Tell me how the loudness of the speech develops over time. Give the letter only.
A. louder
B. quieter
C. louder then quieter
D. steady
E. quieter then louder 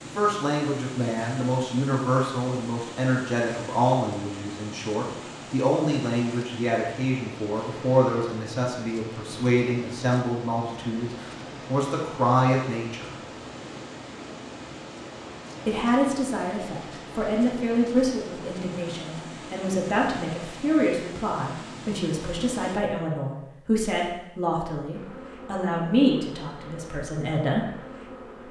D.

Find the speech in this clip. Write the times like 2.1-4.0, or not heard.
0.0-13.2, 15.7-27.6.